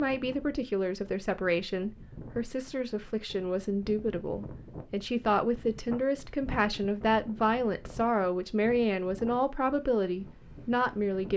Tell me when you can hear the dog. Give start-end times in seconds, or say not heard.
not heard.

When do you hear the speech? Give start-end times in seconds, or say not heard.
0.0-11.3.